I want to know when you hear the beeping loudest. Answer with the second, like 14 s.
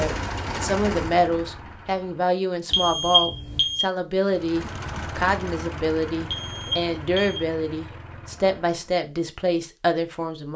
3 s.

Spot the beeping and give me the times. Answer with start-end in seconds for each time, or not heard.
2.7-3.8, 6.2-7.4.